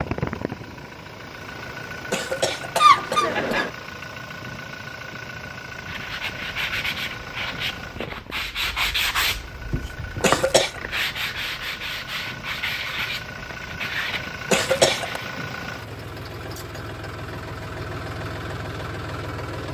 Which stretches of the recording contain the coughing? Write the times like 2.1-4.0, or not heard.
2.1-3.7, 10.2-10.7, 14.5-15.2.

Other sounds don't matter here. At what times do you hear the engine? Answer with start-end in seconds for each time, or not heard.
0.0-19.6.